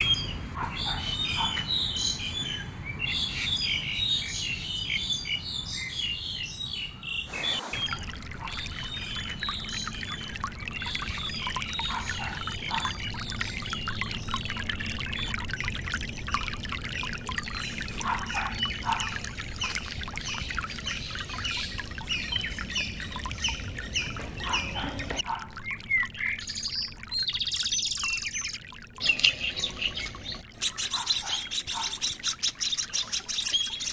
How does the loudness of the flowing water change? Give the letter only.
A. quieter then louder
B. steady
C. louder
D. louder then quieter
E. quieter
E.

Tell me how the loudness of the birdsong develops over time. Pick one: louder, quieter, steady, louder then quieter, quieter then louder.
quieter then louder.